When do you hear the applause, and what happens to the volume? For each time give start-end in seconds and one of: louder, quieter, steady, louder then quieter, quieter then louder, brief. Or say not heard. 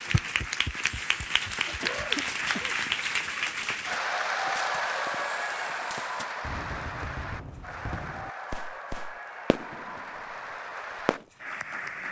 0.0-12.0 quieter.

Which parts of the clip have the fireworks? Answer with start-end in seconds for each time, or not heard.
0.7-11.3.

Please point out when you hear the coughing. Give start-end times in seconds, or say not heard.
1.6-2.8.